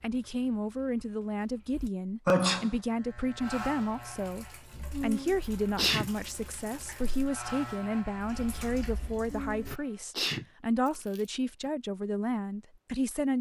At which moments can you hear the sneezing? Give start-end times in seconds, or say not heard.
2.2-2.8, 4.9-6.1, 9.3-11.2.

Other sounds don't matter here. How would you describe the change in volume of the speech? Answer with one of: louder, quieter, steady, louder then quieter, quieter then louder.
steady.